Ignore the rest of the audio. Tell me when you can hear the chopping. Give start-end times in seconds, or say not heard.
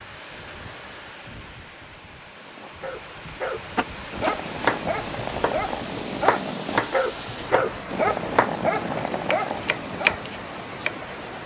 3.8-10.9.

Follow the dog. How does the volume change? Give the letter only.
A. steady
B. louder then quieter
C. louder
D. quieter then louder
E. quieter
C.